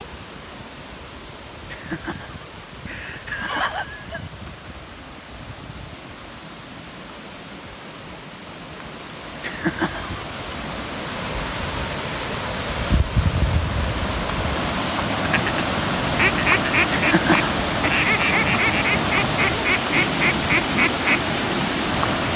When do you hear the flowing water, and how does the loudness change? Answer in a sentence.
The flowing water can be heard from 0.0 to 22.3 s, getting louder.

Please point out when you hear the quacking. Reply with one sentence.
The quacking can be heard from 15.2 to 21.2 s.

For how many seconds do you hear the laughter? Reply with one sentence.
You can hear the laughter for 4 seconds altogether.